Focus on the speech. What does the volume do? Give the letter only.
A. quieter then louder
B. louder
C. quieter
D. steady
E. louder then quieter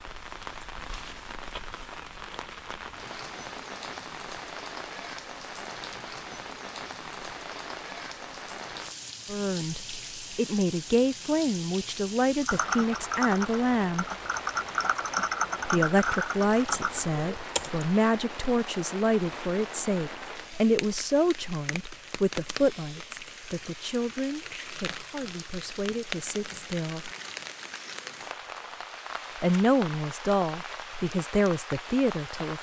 A.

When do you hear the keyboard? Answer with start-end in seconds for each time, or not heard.
12.4-17.9.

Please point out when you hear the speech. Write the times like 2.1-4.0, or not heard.
9.2-14.1, 15.7-27.1, 29.4-32.5.